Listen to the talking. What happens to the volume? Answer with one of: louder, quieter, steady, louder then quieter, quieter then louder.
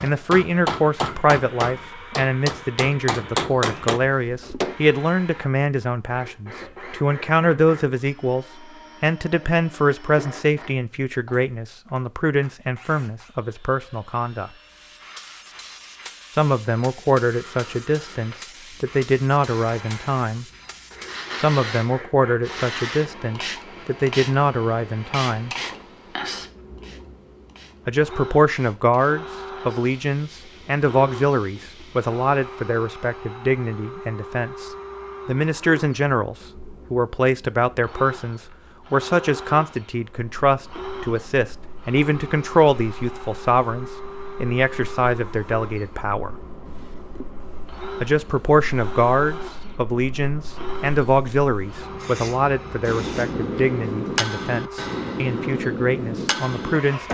steady.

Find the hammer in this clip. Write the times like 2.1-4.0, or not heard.
0.0-4.8, 52.9-57.0.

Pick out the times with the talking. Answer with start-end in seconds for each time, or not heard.
0.0-14.5, 16.4-20.4, 21.4-25.5, 27.9-46.4, 48.0-57.0.